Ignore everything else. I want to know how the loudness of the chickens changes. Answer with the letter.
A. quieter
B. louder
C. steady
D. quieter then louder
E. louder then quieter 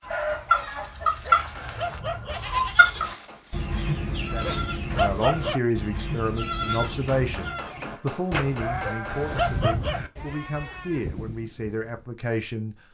A.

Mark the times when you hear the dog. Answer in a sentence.
You can hear the dog from 1.2 to 2.4 s, from 4.4 to 5.6 s and from 8.8 to 10.0 s.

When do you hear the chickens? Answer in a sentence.
You can hear the chickens from 0.1 to 7.5 s.